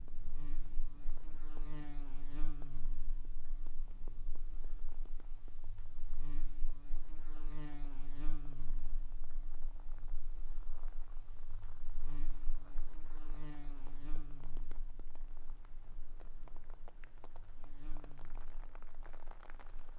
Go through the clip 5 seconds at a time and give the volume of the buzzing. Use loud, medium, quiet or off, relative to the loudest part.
loud, loud, loud, medium.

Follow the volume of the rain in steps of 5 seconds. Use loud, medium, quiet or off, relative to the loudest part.
loud, medium, loud, loud.